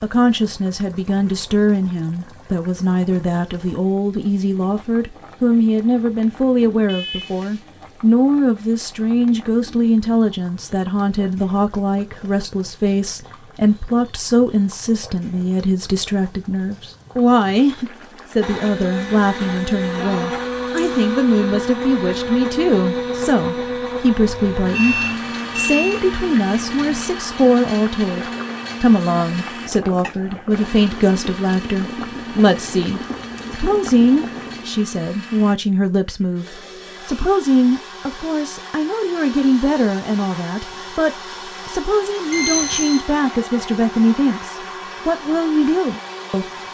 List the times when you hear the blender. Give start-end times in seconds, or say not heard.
18.4-46.7.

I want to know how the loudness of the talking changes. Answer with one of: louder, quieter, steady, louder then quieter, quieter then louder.
steady.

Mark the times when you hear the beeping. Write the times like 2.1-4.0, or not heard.
6.8-7.7, 24.8-26.0, 42.3-43.0.